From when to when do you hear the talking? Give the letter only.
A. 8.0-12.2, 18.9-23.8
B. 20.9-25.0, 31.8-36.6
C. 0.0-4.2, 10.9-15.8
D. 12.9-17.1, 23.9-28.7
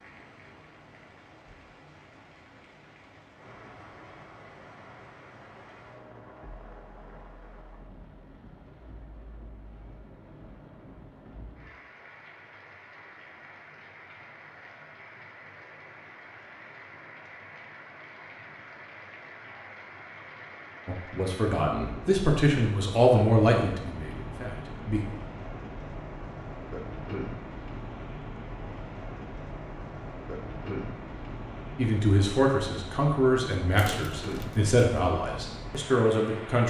B.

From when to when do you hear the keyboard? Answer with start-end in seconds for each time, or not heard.
not heard.